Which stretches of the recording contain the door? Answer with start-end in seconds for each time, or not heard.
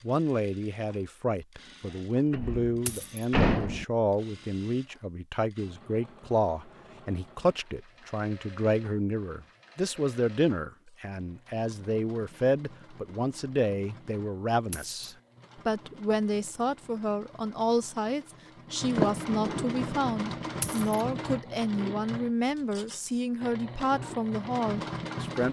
2.3-3.9, 18.9-20.1.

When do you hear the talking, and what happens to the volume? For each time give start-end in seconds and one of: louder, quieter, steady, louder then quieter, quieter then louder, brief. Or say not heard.
0.0-25.4 steady.